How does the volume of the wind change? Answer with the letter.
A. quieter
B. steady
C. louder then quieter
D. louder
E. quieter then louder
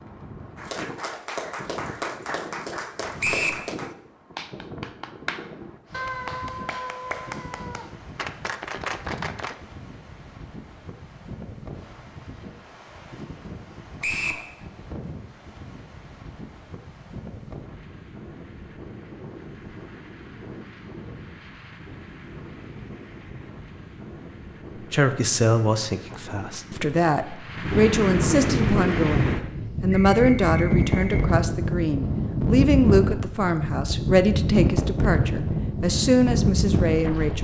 D.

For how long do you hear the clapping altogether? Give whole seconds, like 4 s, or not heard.
9 s.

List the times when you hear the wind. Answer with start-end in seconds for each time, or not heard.
0.0-37.3.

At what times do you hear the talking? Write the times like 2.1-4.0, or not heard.
24.8-37.3.